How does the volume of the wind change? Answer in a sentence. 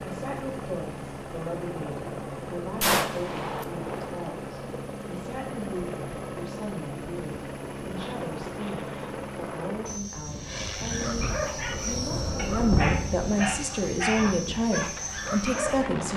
The volume of the wind goes up, then down.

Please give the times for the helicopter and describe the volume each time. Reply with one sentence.
You can hear the helicopter from 0.0 to 16.1 s, at a steady volume.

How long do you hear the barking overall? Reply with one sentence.
You can hear the barking for 5 seconds altogether.